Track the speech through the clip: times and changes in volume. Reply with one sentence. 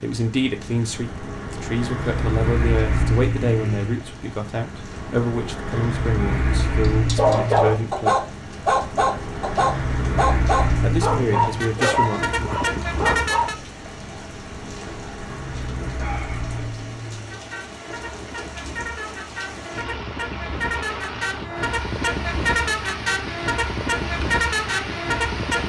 The speech can be heard from 0.0 to 8.2 s, at a steady volume; and briefly from 10.8 to 12.6 s.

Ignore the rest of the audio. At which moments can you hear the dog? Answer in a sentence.
The dog can be heard from 7.0 to 13.5 s.